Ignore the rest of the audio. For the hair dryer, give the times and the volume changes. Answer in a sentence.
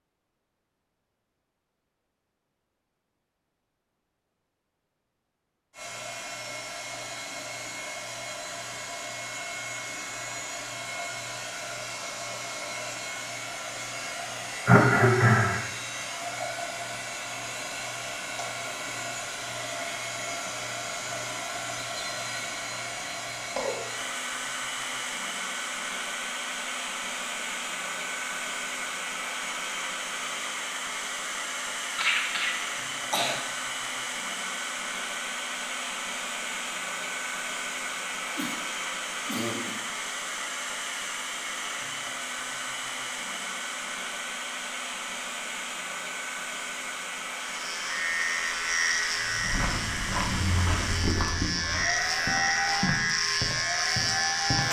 The hair dryer can be heard from 5.7 to 54.6 s, at a steady volume.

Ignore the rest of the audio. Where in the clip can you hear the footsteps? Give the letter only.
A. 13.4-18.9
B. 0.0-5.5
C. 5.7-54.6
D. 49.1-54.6
D.